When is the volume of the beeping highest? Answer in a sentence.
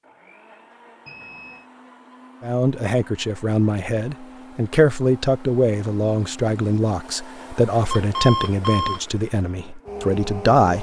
The volume of the beeping peaks at 8 seconds.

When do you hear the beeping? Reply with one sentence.
The beeping can be heard from 1.1 to 1.6 s and from 7.9 to 9.1 s.